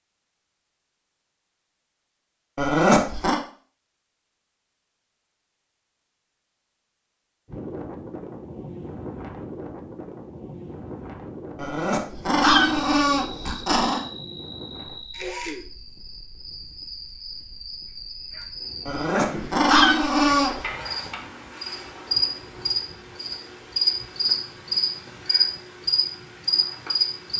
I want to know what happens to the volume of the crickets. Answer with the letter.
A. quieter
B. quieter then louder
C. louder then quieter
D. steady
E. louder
E.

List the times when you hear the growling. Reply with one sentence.
The growling can be heard from 2.5 to 3.4 s, from 11.6 to 14.0 s and from 18.9 to 20.6 s.